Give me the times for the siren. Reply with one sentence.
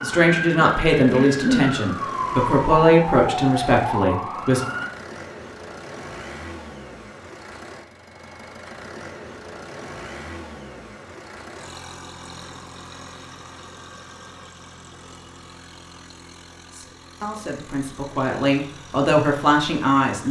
You can hear the siren from 0.0 to 4.9 s.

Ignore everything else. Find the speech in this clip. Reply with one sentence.
You can hear the speech from 0.0 to 4.6 s and from 16.7 to 20.2 s.